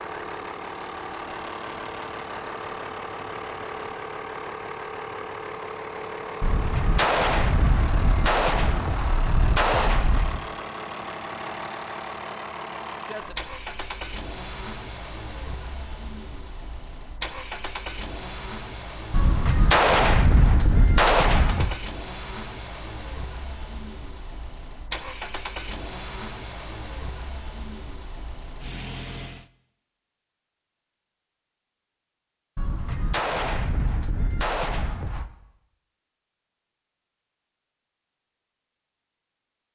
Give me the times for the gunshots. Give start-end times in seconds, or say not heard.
6.4-10.4, 19.1-21.8, 32.5-35.3.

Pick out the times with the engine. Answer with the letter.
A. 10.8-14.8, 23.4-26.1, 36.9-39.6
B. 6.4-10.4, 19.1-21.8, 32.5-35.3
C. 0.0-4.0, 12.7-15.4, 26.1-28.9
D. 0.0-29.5
D.